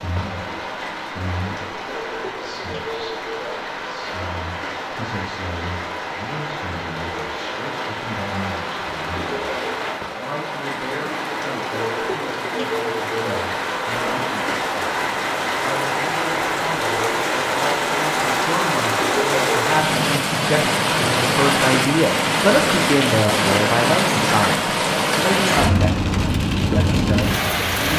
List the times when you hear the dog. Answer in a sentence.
The dog can't be heard in this clip.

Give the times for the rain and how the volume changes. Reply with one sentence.
The rain can be heard from 0.0 to 27.9 s, getting louder.